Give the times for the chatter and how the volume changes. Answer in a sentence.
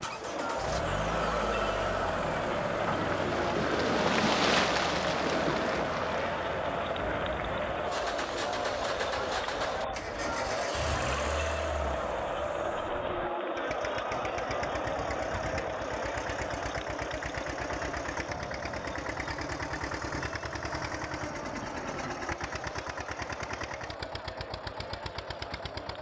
The chatter can be heard from 0.0 to 25.9 s, getting quieter.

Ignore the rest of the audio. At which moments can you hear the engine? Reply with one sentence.
The engine can be heard from 0.0 to 25.9 s.